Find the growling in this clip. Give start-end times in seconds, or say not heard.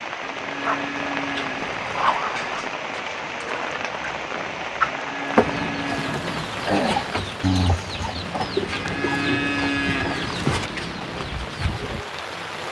0.7-2.6, 7.4-8.2.